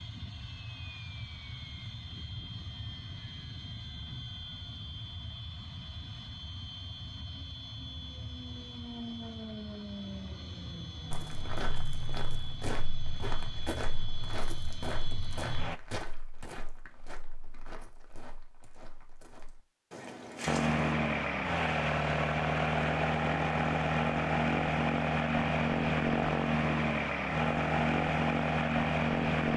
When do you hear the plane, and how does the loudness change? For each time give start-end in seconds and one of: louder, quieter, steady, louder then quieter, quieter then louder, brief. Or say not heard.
0.0-15.8 steady
20.4-29.5 steady.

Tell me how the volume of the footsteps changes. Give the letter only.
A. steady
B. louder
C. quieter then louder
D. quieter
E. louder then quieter
C.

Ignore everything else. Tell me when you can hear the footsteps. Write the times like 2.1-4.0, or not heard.
11.1-20.9.